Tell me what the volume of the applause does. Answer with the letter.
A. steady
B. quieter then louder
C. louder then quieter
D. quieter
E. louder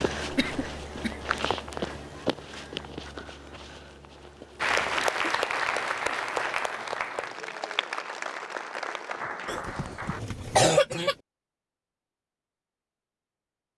D.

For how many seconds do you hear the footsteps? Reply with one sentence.
The footsteps can be heard for 5 seconds in total.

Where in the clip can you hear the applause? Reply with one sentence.
The applause can be heard from 4.6 to 10.2 s.